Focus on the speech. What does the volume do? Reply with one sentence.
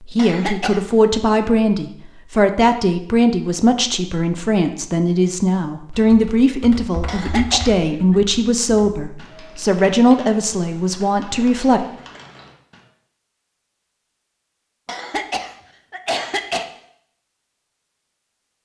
The loudness of the speech stays about the same.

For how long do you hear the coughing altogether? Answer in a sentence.
The coughing can be heard for 4 seconds in total.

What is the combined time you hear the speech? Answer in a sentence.
The speech can be heard for 12 seconds in total.